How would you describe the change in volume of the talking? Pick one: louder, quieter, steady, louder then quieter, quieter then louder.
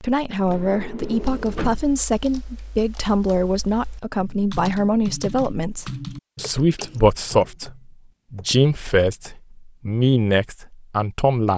steady.